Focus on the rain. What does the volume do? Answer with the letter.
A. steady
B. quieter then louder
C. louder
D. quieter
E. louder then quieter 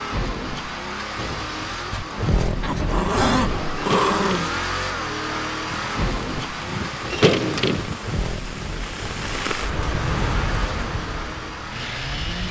E.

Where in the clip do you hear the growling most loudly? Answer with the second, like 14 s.
3 s.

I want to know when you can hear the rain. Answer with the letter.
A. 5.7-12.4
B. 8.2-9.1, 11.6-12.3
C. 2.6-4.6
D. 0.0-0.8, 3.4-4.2
A.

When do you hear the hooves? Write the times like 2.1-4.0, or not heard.
not heard.